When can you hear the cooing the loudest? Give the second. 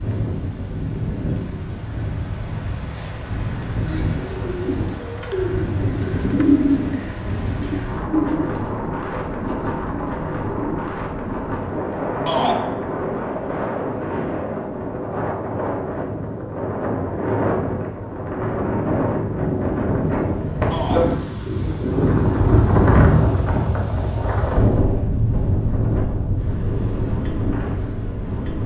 7 s.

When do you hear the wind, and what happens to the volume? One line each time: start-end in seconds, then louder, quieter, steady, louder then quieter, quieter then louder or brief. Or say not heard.
0.0-28.6 louder.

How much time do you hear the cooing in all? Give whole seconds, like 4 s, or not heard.
7 s.